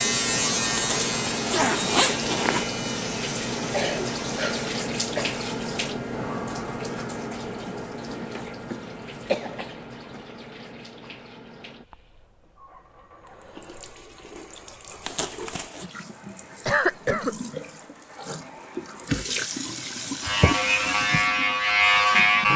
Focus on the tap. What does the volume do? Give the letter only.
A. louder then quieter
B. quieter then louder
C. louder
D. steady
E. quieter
B.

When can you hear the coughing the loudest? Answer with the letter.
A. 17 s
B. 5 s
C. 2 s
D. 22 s
A.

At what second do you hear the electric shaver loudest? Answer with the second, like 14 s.
22 s.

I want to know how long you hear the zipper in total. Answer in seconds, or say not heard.
3 s.